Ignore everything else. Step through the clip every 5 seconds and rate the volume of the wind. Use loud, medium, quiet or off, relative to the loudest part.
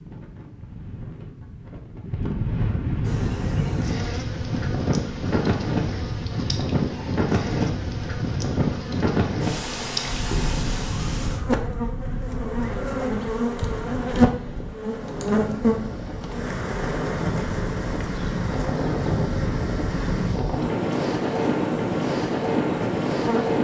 medium, loud, medium, medium, loud.